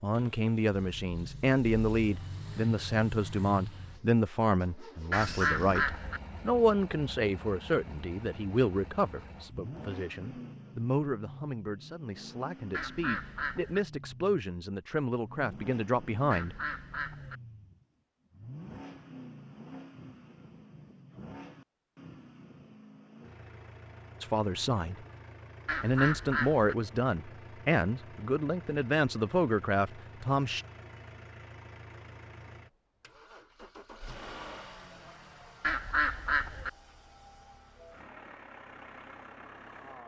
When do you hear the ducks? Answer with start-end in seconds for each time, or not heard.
5.1-6.2, 12.7-13.8, 16.3-17.4, 25.6-26.8, 35.6-36.7.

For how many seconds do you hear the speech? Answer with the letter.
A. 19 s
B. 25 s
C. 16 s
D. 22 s
D.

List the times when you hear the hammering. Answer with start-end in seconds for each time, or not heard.
not heard.